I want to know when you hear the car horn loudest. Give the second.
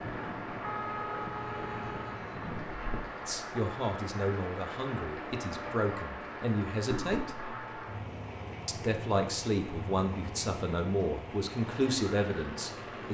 1 s.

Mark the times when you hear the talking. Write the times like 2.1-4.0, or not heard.
3.2-7.3, 8.7-13.0.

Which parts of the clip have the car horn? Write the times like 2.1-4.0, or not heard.
0.6-2.8.